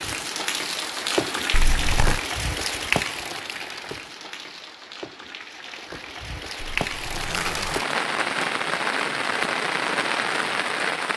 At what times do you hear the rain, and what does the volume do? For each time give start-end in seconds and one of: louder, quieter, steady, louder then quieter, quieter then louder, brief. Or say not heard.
0.0-11.1 quieter then louder.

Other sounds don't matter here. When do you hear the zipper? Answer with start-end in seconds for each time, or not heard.
1.5-2.2, 6.8-7.8.